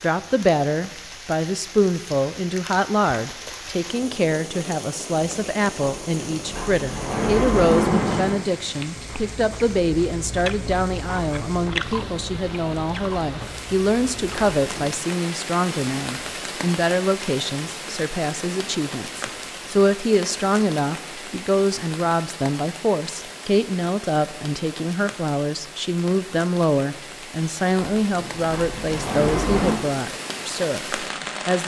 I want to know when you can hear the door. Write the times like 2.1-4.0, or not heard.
5.8-8.4, 14.6-15.1, 27.8-29.8.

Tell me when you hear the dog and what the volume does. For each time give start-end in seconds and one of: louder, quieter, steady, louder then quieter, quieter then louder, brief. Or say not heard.
not heard.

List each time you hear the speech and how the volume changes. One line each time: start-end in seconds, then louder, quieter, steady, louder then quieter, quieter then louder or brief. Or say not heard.
0.0-31.6 steady.